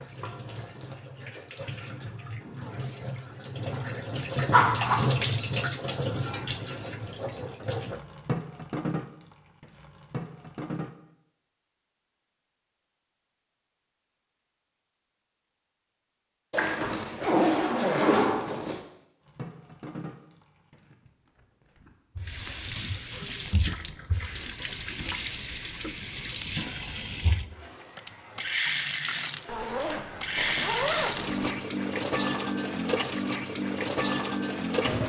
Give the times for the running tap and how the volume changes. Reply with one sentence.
You can hear the running tap from 0.0 to 10.9 s, getting louder then quieter; and from 19.2 to 35.0 s, getting louder.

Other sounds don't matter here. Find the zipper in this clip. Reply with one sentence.
The zipper can be heard from 4.5 to 5.0 s, from 16.5 to 18.8 s and from 29.4 to 31.5 s.